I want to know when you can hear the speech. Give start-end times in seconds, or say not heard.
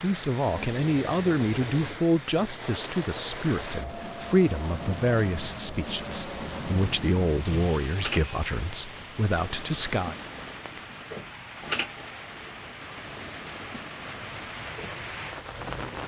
0.0-10.2.